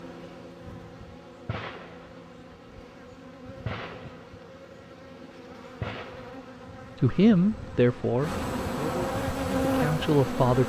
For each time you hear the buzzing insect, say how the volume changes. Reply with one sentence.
The buzzing insect can be heard from 0.0 to 10.6 s, getting louder.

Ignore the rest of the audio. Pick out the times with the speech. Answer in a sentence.
The speech can be heard from 7.0 to 10.6 s.